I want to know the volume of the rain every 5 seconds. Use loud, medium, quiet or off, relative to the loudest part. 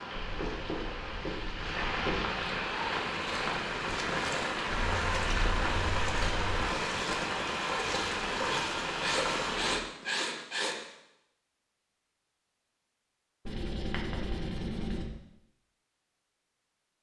loud, loud, off, off.